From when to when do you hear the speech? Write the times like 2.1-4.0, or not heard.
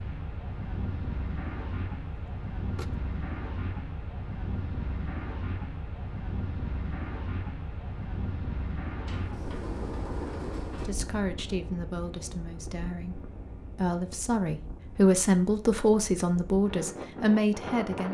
10.8-18.0.